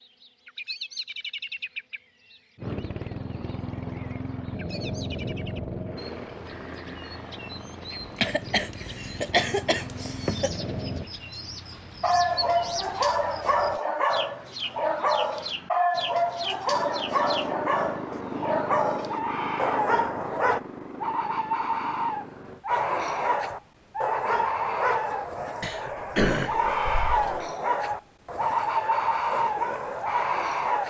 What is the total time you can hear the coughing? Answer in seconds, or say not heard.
4 s.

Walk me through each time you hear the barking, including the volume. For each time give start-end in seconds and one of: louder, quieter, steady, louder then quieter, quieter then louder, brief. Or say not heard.
12.0-20.6 steady
22.6-30.8 steady.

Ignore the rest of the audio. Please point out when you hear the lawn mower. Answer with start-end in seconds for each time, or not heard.
2.5-11.1, 16.6-22.6.